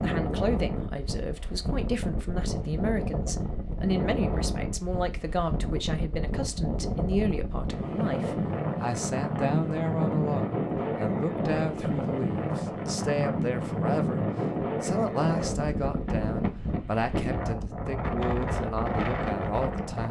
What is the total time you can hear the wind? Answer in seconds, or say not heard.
20 s.